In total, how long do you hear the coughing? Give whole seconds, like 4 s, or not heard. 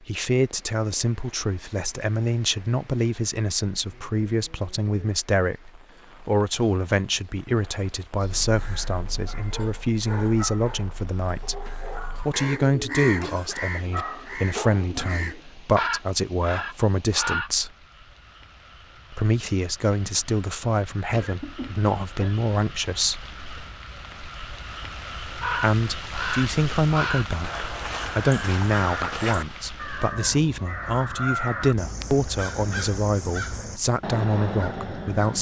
2 s.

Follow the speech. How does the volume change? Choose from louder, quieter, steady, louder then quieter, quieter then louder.
steady.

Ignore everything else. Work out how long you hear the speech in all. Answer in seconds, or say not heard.
31 s.